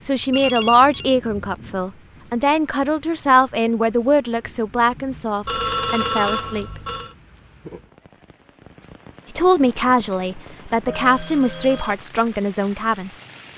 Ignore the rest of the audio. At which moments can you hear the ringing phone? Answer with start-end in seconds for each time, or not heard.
0.3-1.1, 5.5-7.2, 10.8-11.9.